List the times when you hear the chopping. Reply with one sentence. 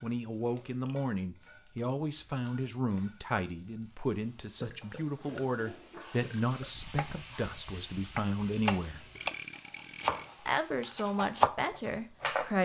The chopping can be heard from 6.7 to 12.6 s.